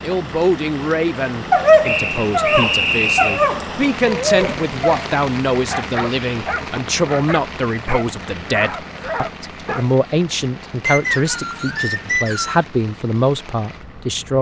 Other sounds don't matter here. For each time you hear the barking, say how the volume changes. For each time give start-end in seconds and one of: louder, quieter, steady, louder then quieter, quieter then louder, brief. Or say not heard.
1.5-10.0 quieter.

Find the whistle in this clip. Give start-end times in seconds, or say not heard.
1.8-3.5, 10.8-12.7.